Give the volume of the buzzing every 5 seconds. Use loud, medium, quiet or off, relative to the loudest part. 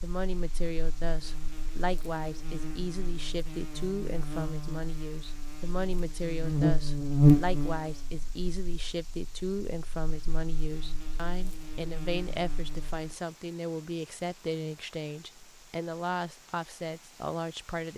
quiet, loud, quiet, off.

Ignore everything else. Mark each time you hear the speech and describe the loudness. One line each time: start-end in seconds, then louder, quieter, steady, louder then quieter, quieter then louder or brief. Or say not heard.
0.0-17.9 steady.